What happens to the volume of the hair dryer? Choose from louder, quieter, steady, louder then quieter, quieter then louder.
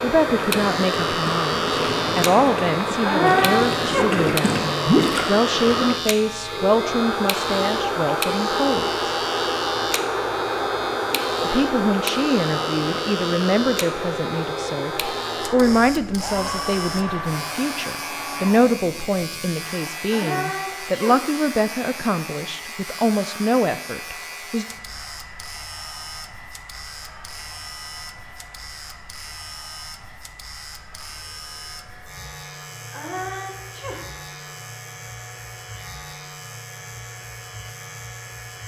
quieter.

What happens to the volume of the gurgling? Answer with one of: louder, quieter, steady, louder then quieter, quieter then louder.
louder.